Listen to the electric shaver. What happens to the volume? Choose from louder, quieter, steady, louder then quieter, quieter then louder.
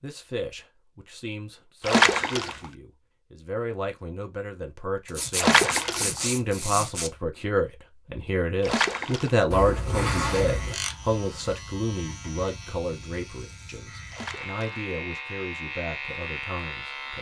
quieter then louder.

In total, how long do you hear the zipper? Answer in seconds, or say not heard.
3 s.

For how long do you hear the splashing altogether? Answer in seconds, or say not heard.
3 s.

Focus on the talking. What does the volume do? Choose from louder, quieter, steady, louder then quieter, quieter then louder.
louder then quieter.